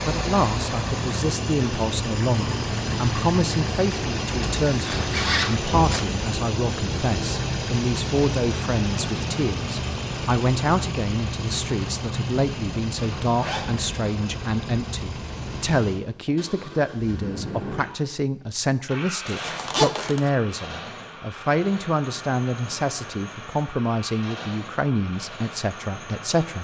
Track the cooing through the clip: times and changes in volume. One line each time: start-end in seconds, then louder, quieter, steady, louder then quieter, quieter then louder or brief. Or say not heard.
not heard.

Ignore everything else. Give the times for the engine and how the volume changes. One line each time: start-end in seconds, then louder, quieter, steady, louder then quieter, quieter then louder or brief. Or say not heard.
0.0-26.5 quieter.